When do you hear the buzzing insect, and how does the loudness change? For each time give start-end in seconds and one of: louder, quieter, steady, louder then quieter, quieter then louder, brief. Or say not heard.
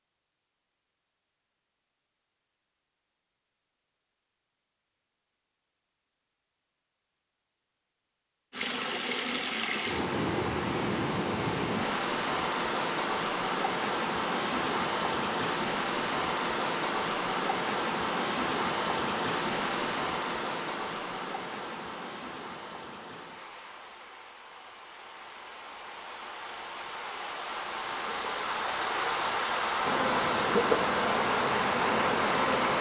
27.8-32.7 louder.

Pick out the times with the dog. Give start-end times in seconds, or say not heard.
not heard.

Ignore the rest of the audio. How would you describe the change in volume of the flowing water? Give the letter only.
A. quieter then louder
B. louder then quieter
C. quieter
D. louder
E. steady
A.